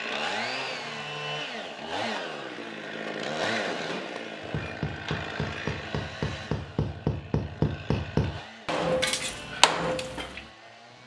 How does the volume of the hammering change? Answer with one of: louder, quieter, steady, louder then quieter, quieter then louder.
louder.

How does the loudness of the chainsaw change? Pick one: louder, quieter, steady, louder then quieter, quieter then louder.
quieter.